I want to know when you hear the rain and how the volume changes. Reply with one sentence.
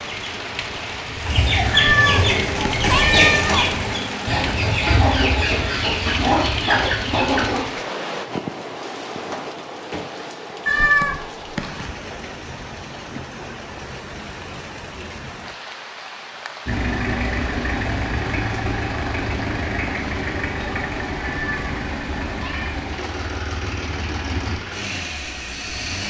You can hear the rain from 0.0 to 26.0 s, getting quieter.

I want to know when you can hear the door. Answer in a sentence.
The door can be heard from 9.2 to 10.1 s.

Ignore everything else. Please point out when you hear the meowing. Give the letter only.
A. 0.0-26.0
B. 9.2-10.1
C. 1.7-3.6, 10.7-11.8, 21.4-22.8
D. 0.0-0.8
C.